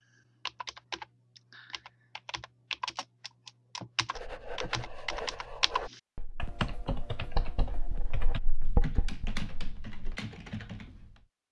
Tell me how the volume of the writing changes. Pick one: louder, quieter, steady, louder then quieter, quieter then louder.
quieter then louder.